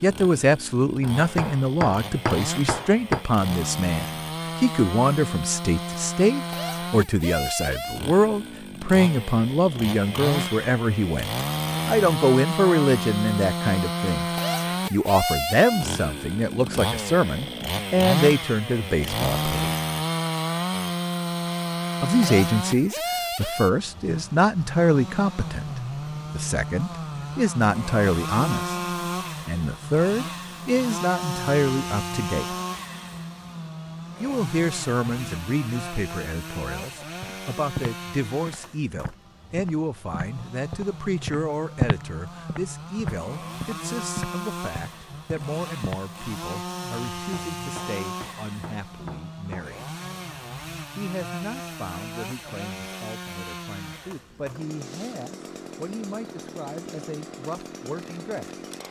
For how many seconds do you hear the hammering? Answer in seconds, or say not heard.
5 s.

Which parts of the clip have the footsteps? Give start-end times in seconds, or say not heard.
37.2-46.0.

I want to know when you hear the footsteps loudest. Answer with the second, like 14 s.
42 s.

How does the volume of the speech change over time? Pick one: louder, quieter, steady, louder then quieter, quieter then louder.
quieter.